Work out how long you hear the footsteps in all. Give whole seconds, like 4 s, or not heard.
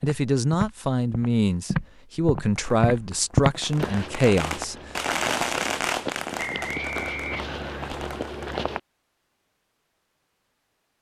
9 s.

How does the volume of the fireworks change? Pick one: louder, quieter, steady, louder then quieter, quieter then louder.
louder then quieter.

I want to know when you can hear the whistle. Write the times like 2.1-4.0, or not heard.
6.3-7.9.